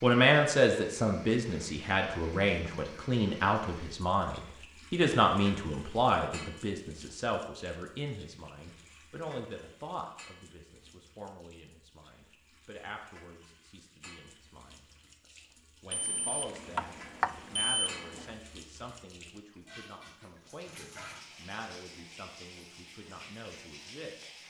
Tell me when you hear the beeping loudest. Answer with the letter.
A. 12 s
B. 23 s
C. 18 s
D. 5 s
C.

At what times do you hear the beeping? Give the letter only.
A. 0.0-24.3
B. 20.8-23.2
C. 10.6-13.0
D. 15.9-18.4
D.